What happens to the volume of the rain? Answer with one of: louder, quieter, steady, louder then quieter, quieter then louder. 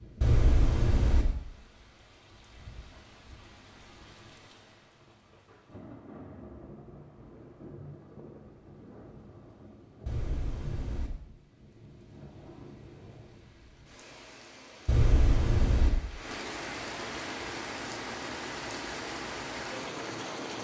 louder.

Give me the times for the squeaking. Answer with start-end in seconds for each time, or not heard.
0.2-1.2, 10.1-11.1, 14.8-15.9.